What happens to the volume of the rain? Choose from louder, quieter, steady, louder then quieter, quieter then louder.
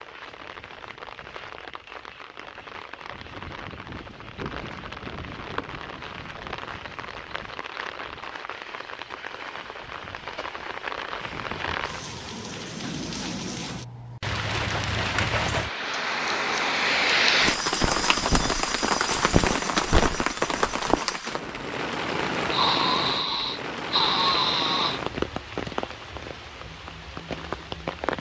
louder then quieter.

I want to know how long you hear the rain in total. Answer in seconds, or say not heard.
28 s.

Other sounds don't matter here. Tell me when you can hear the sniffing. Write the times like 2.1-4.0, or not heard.
22.5-25.0.